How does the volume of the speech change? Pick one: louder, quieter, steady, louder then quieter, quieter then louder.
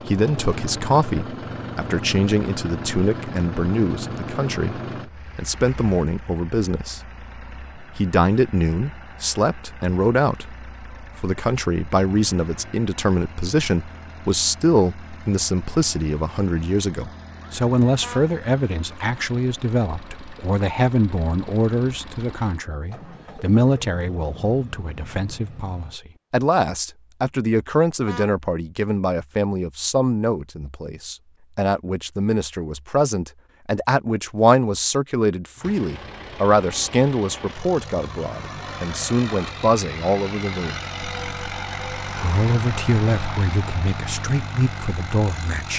steady.